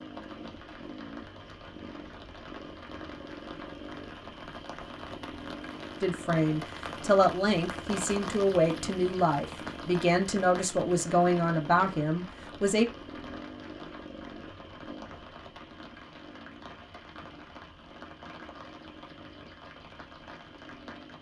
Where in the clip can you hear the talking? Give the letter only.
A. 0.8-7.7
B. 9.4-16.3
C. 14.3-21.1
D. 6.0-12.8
D.